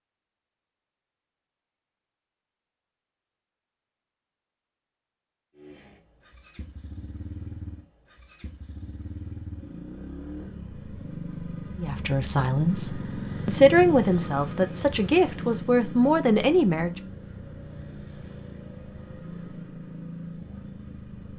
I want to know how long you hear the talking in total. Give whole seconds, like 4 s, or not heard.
5 s.